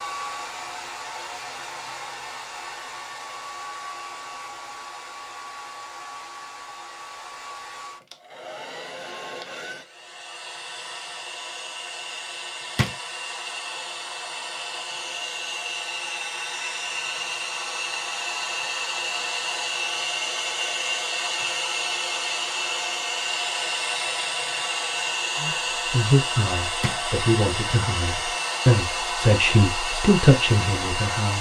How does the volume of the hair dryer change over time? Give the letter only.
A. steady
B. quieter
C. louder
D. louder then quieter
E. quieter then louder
C.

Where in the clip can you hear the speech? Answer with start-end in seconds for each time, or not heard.
25.4-31.3.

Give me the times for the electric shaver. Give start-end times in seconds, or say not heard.
not heard.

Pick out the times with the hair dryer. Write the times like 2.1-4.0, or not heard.
0.0-31.3.